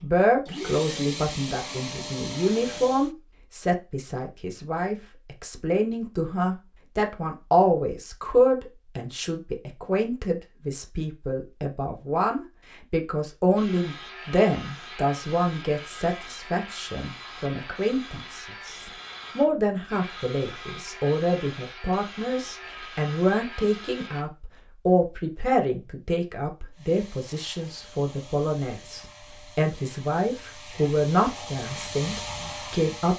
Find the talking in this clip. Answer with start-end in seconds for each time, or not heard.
0.0-33.1.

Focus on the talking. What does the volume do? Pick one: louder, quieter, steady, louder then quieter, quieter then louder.
steady.